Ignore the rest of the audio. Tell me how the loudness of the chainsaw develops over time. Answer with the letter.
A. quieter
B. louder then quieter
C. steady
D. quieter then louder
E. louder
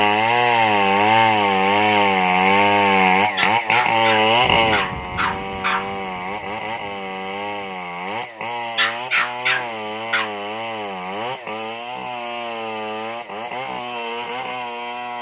A.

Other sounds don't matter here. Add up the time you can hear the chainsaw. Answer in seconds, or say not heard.
15 s.